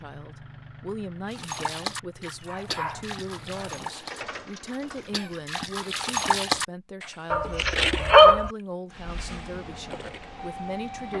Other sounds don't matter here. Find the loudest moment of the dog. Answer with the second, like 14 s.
8 s.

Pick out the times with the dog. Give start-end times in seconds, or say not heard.
2.5-3.9, 7.3-8.5.